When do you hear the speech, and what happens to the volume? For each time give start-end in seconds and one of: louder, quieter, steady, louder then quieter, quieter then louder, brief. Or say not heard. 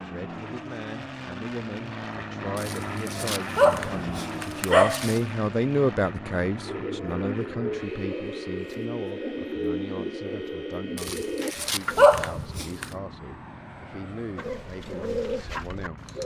0.0-16.1 louder then quieter.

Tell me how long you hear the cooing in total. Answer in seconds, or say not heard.
7 s.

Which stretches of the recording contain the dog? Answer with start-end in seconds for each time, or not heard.
2.5-5.2, 10.9-12.9.